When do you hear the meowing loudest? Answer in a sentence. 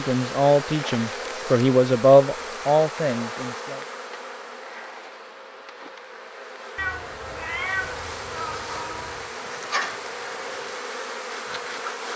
The loudest moment of the meowing is at 8 seconds.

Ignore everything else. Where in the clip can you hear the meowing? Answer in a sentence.
The meowing can be heard from 6.8 to 9.3 s.